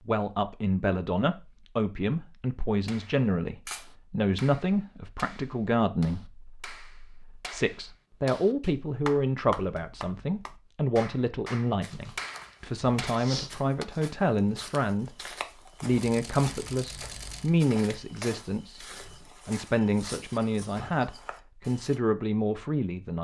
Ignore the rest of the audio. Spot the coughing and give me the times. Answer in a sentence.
The coughing can't be heard in this clip.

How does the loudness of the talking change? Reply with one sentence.
The volume of the talking stays about the same.